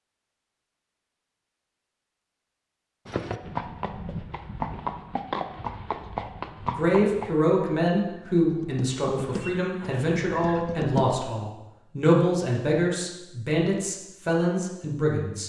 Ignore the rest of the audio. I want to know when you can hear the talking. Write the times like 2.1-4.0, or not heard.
6.6-15.4.